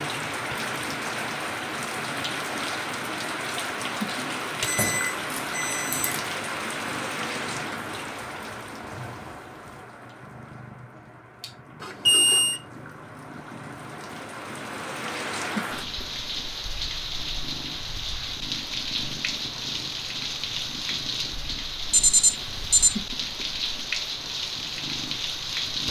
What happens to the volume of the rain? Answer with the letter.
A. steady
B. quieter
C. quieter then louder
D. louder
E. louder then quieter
C.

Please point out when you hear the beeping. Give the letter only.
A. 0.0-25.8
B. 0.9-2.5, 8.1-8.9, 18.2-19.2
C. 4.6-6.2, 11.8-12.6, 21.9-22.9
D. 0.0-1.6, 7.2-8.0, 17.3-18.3
C.